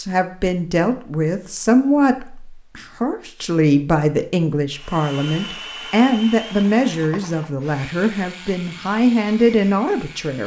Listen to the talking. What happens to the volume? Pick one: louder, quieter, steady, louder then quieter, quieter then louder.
steady.